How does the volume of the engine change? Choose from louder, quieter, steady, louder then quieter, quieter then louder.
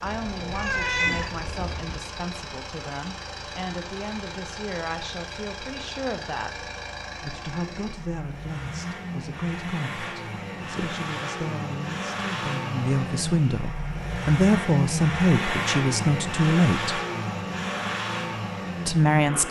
louder.